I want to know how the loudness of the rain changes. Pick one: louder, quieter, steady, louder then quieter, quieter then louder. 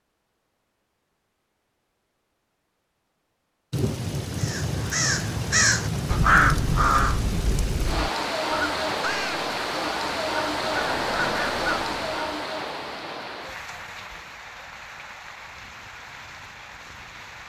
quieter.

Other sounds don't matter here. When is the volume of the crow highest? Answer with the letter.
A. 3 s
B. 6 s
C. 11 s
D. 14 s
B.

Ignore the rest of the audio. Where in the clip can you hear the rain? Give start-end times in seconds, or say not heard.
3.7-17.4.